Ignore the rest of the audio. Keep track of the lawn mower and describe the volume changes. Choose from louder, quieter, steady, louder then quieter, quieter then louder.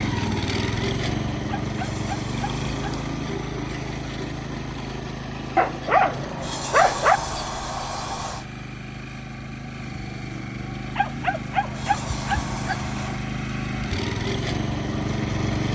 quieter then louder.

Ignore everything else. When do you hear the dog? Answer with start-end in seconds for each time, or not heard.
1.4-2.9, 5.5-7.2, 10.9-12.8.